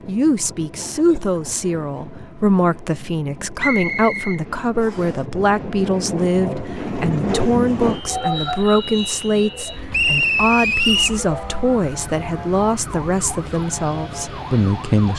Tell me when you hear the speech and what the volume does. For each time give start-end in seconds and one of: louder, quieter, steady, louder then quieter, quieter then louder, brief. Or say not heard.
0.1-15.1 steady.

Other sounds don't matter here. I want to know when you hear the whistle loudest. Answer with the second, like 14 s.
10 s.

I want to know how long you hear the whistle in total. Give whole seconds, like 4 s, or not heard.
3 s.